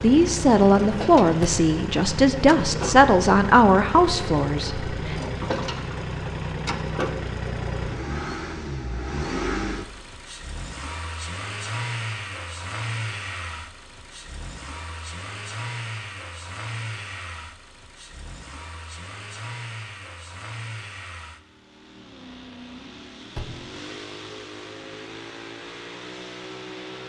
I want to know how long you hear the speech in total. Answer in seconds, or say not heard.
5 s.